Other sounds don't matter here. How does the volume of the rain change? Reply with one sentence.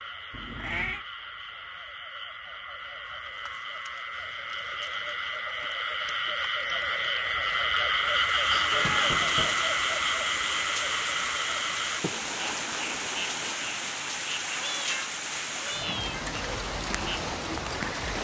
The loudness of the rain stays about the same.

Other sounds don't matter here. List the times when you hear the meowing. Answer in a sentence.
The meowing can be heard from 0.3 to 1.1 s, from 8.7 to 9.7 s and from 14.6 to 16.3 s.